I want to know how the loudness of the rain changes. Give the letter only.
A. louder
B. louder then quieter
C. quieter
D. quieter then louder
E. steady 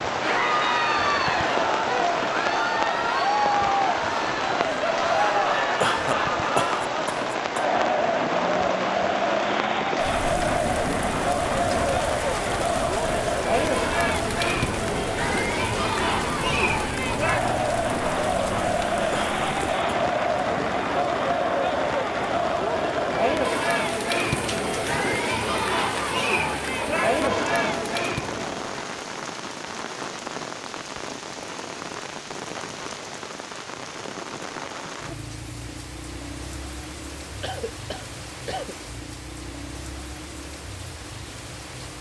C.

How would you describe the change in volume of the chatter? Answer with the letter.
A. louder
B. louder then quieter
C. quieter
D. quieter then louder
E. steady
E.